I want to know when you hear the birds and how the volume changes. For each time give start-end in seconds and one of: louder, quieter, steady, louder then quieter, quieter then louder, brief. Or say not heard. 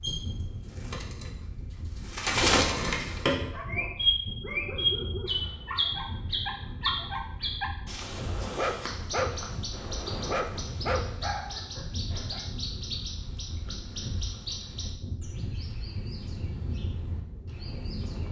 0.0-18.2 quieter.